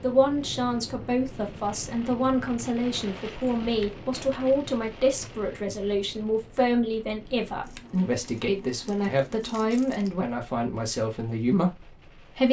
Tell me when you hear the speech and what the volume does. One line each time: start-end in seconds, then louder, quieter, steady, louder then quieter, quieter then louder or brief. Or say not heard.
0.0-12.4 steady.